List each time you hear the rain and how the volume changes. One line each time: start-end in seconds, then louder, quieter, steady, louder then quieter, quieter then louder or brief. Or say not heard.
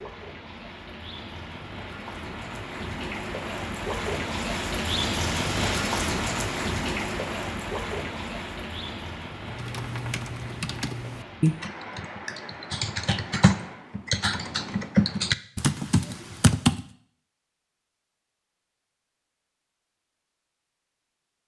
0.0-14.0 louder then quieter.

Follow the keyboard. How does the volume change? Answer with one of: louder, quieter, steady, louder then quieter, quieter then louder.
louder.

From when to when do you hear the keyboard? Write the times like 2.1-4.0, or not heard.
9.4-16.8.